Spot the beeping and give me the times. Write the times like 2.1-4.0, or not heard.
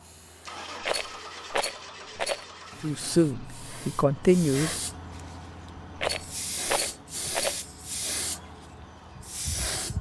not heard.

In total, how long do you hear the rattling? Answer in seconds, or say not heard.
3 s.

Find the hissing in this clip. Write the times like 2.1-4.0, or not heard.
0.0-9.9.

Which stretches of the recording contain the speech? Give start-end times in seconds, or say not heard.
2.8-4.7.